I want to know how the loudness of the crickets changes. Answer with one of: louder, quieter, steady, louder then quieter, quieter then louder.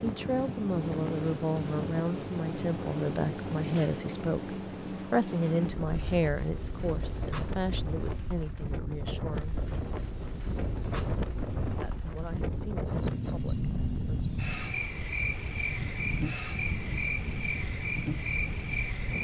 quieter then louder.